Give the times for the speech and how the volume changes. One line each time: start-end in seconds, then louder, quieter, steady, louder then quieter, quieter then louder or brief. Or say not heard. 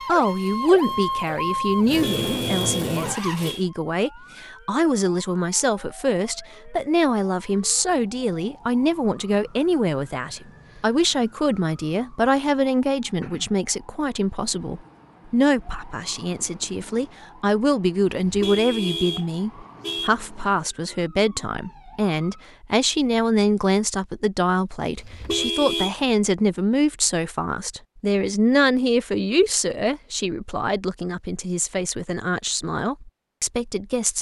0.1-34.1 steady.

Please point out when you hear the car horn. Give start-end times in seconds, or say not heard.
1.9-3.6, 18.2-20.1, 24.9-25.9.